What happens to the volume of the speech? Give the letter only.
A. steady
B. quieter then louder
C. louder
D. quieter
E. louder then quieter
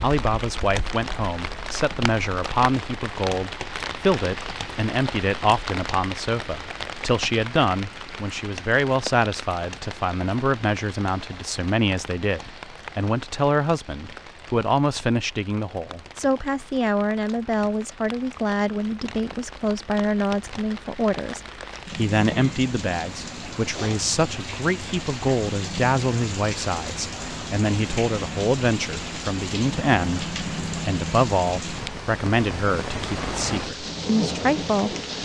A.